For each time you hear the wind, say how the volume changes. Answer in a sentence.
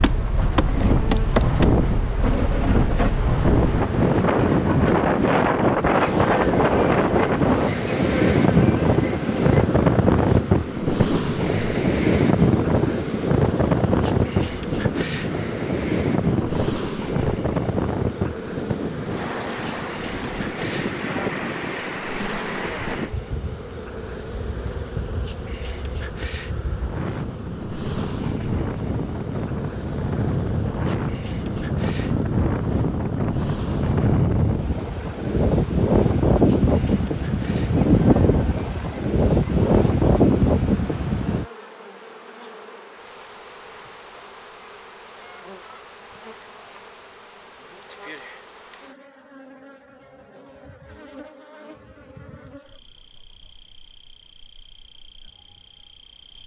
You can hear the wind from 0.0 to 41.5 s, getting quieter then louder.